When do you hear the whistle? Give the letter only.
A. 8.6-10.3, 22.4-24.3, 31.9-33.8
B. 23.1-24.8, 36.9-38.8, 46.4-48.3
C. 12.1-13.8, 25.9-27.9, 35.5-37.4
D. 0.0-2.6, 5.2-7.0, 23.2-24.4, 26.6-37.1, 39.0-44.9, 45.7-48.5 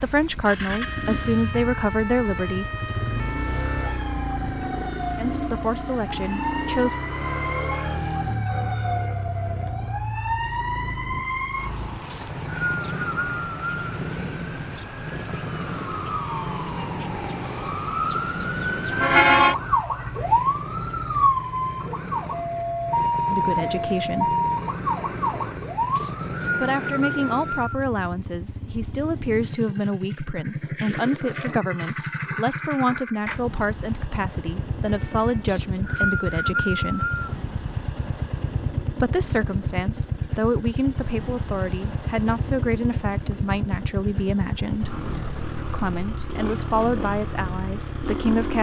C.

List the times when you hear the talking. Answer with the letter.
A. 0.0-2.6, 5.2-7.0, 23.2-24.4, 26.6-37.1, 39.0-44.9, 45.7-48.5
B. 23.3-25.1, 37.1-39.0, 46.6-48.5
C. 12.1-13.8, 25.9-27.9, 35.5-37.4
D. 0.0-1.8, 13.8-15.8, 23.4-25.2
A.